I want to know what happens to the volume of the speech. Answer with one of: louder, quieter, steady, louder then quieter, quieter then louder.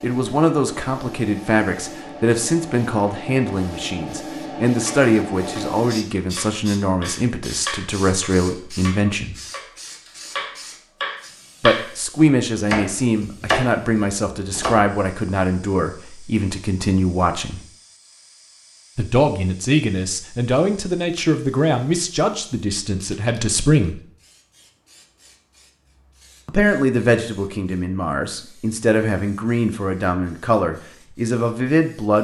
steady.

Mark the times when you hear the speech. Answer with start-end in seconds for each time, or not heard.
0.0-9.3, 11.6-17.6, 18.9-24.0, 26.4-32.1.